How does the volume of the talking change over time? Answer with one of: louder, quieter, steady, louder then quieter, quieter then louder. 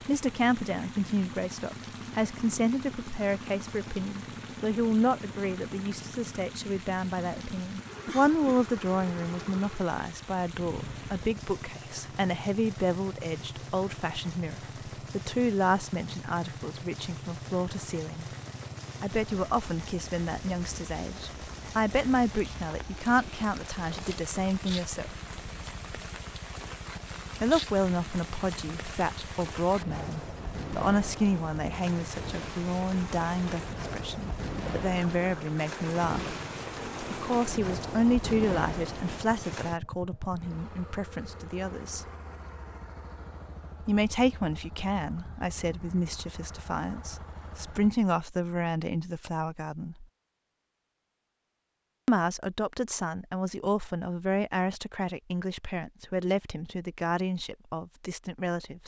steady.